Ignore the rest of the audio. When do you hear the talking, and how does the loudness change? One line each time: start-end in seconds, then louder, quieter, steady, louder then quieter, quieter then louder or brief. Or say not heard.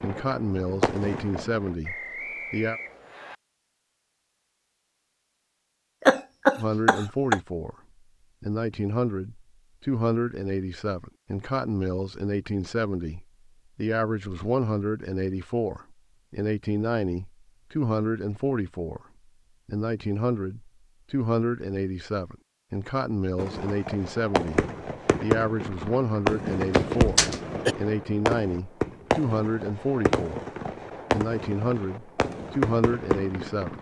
0.0-2.8 brief
6.5-7.8 brief
8.4-19.0 steady
19.6-30.4 steady
31.1-33.7 brief.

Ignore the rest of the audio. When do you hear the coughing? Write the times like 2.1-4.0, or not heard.
6.0-7.4, 26.7-27.8.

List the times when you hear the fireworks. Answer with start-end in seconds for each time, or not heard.
0.0-1.8, 23.4-33.7.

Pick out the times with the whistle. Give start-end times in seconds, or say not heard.
1.8-3.4.